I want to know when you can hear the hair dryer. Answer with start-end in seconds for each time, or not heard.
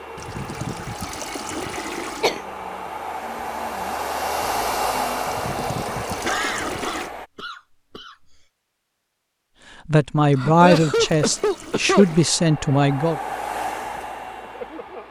0.0-7.3, 12.0-15.0.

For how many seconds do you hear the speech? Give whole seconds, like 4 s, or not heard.
3 s.